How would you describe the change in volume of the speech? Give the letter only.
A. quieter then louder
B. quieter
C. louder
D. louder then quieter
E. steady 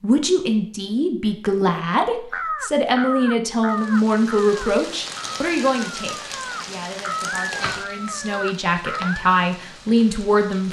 A.